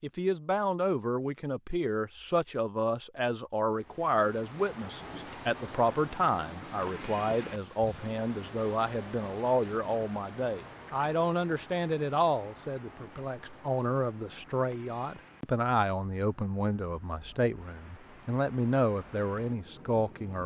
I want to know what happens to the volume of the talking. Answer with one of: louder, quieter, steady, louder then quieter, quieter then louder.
steady.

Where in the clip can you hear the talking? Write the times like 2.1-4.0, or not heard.
0.0-20.4.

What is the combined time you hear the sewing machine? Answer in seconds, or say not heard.
not heard.